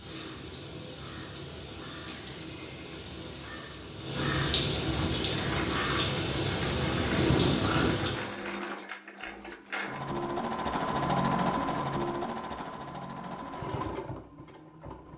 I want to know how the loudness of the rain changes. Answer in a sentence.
The loudness of the rain goes up.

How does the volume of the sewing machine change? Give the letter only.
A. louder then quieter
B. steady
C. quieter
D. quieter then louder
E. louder
A.